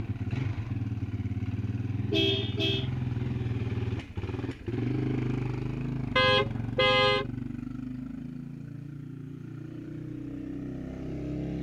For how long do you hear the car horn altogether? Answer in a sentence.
You can hear the car horn for 2 seconds altogether.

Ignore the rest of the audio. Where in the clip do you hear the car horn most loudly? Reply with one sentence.
The volume of the car horn peaks at 7 seconds.